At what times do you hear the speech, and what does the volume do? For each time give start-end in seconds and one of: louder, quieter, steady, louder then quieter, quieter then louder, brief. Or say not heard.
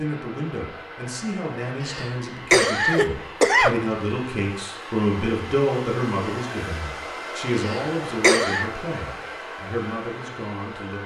0.0-11.0 louder then quieter.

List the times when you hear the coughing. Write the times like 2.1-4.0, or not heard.
1.8-3.8, 7.5-8.7.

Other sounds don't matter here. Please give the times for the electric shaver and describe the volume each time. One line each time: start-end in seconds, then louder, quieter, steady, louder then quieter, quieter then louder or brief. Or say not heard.
not heard.